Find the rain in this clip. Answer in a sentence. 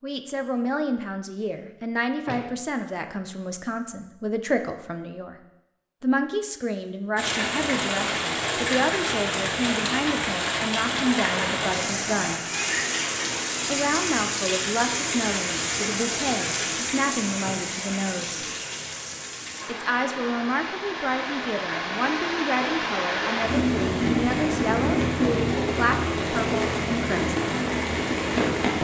The rain can be heard from 7.2 to 28.7 s.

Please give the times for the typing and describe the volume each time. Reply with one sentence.
You can't hear the typing here.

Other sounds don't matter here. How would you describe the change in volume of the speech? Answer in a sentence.
The volume of the speech stays about the same.